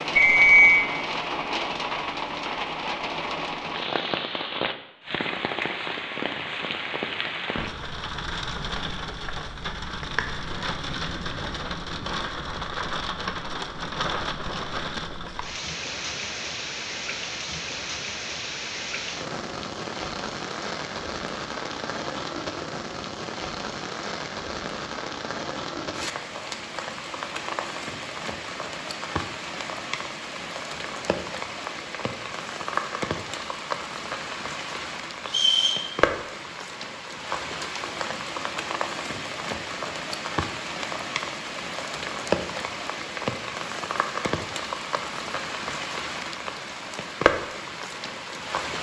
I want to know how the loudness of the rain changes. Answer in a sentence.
The volume of the rain stays about the same.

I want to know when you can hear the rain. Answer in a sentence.
The rain can be heard from 0.0 to 48.7 s.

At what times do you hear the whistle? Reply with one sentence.
The whistle can be heard from 0.1 to 0.8 s and from 35.2 to 35.9 s.